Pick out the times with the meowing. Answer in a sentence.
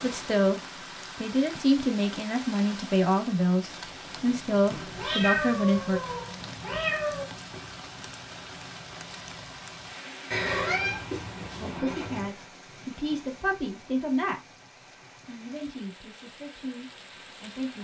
The meowing can be heard from 4.7 to 7.2 s and from 10.3 to 12.3 s.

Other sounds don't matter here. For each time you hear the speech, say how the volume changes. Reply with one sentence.
You can hear the speech from 0.0 to 6.0 s, at a steady volume; briefly from 11.6 to 14.5 s; and briefly from 15.2 to 17.7 s.